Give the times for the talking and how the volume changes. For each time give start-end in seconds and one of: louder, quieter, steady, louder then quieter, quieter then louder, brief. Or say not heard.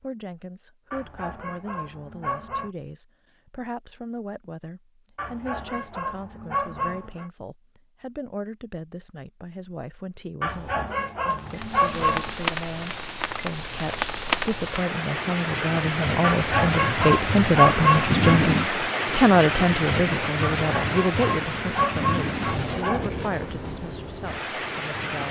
0.0-25.2 louder then quieter.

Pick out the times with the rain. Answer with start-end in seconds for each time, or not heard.
11.3-25.2.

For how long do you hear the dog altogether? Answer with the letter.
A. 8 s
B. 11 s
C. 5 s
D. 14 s
B.